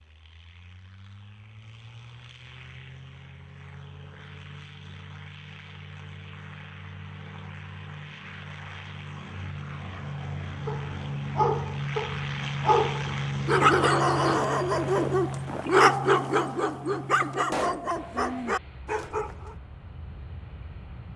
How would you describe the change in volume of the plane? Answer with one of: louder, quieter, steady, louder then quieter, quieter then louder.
louder then quieter.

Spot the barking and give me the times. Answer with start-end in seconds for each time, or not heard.
10.7-19.6.